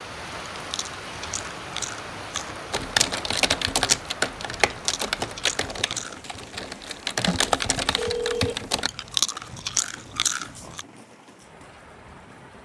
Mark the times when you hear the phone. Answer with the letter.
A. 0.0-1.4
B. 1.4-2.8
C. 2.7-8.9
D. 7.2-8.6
D.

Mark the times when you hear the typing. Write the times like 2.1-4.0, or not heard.
2.7-8.9.